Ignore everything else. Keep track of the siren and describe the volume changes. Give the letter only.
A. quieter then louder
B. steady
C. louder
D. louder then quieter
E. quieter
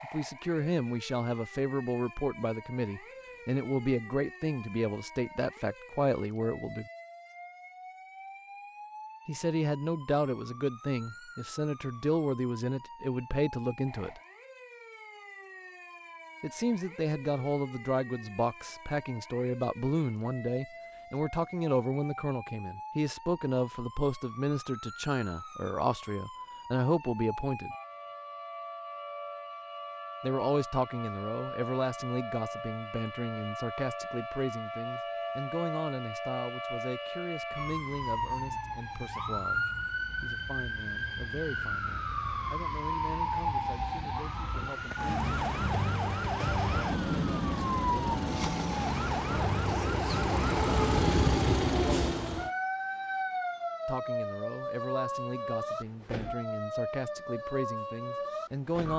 C.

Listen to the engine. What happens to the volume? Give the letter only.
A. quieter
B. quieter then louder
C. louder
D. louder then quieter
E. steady
C.